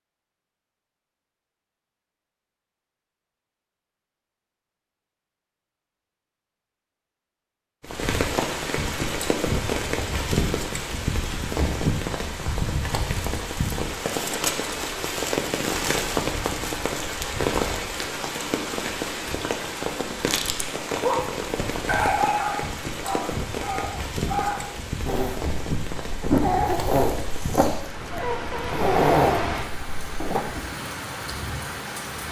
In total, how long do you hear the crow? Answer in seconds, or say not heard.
not heard.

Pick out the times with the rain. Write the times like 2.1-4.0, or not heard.
7.8-32.2.